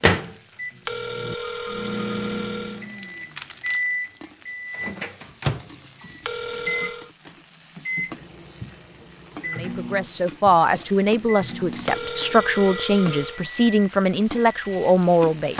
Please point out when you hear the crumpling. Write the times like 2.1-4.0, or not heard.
2.8-3.8.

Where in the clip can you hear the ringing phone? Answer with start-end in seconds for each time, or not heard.
0.8-2.9, 6.2-7.1, 11.8-13.4.